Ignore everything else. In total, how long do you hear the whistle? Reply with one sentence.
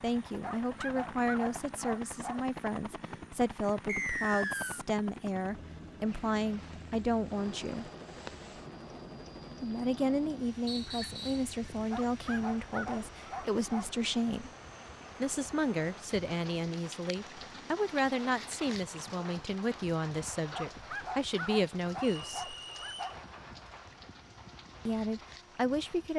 The whistle can be heard for 3 seconds in total.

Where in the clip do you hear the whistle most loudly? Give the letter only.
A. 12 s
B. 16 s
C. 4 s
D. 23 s
C.